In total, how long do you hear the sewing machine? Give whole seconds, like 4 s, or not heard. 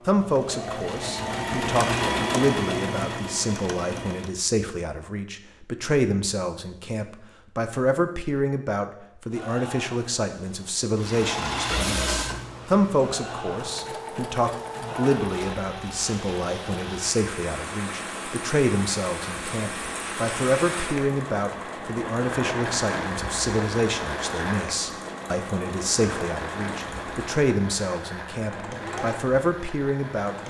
24 s.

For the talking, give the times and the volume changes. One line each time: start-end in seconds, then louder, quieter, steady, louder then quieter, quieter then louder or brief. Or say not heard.
0.1-30.4 steady.